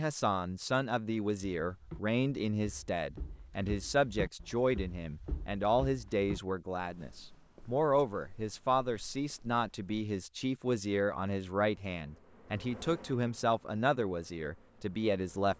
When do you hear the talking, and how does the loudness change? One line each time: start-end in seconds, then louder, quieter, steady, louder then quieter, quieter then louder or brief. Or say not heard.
0.0-15.5 steady.